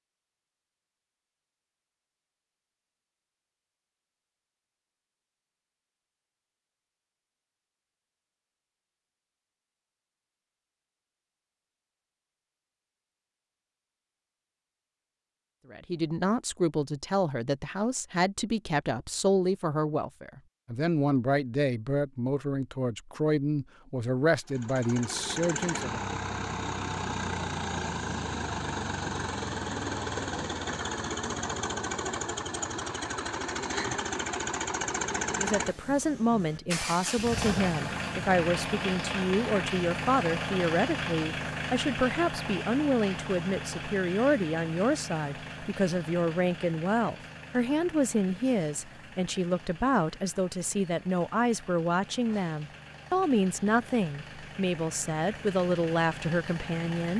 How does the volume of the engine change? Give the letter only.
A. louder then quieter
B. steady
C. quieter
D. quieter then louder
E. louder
C.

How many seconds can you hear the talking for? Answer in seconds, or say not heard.
32 s.